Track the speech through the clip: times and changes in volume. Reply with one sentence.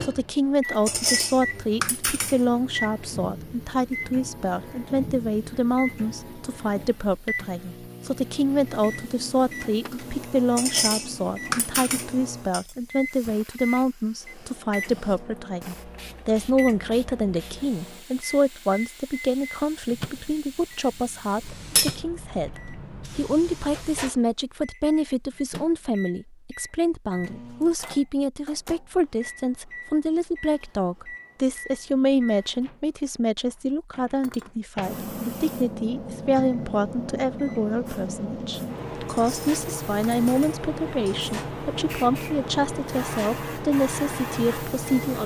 The speech can be heard from 0.0 to 45.2 s, at a steady volume.